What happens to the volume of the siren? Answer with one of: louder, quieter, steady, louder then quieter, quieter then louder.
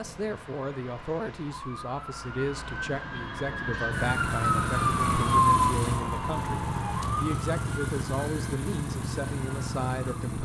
louder then quieter.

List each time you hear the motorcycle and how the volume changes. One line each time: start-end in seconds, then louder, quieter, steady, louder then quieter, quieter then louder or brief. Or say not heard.
3.9-10.4 steady.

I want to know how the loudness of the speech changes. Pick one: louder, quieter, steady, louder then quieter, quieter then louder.
steady.